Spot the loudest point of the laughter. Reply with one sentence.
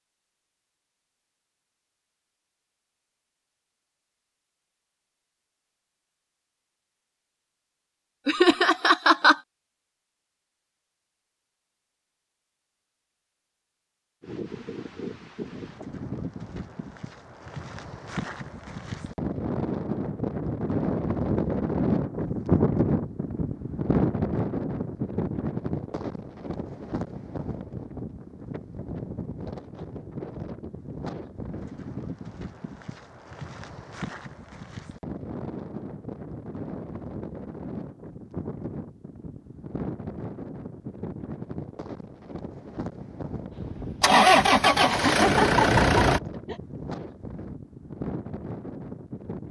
The loudest moment of the laughter is at 9 seconds.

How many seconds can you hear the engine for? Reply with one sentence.
The engine can be heard for 3 seconds in total.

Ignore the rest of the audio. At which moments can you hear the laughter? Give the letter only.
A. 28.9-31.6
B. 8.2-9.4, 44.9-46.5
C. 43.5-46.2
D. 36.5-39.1
B.